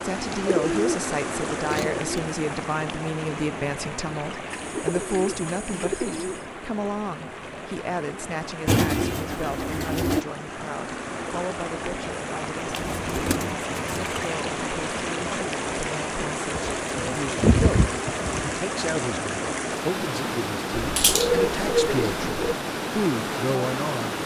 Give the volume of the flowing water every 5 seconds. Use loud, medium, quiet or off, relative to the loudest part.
loud, medium, loud, loud, loud.